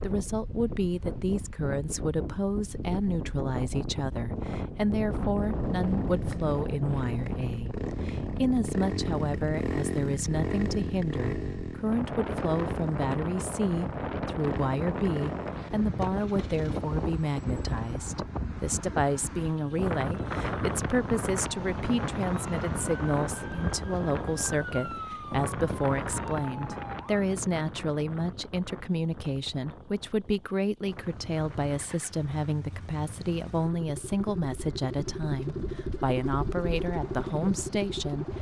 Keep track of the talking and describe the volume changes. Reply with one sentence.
The volume of the talking stays about the same.